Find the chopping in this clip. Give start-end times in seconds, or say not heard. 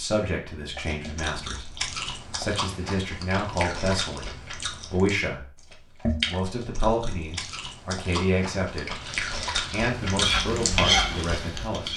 not heard.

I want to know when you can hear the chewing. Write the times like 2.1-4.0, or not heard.
0.8-11.4.